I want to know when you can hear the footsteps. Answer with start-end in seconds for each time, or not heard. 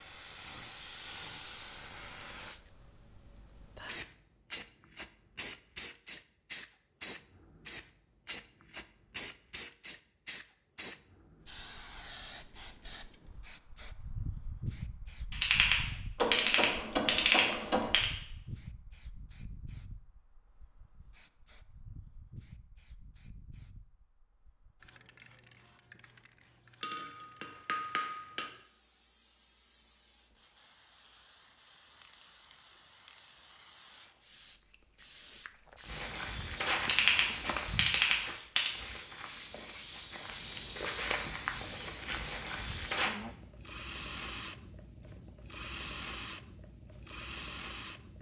35.9-43.2.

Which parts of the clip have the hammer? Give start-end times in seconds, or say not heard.
16.1-17.9, 26.8-28.5.